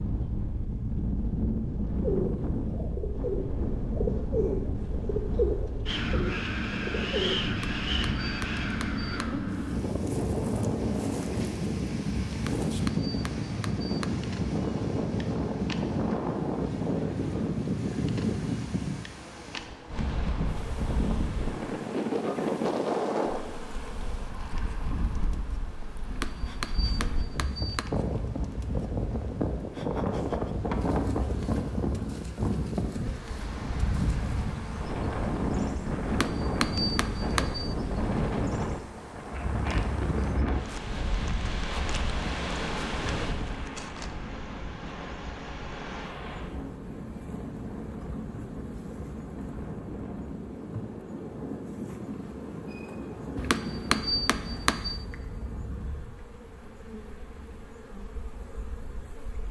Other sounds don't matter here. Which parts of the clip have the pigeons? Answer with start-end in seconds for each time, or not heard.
2.0-7.5.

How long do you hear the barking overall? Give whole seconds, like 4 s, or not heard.
not heard.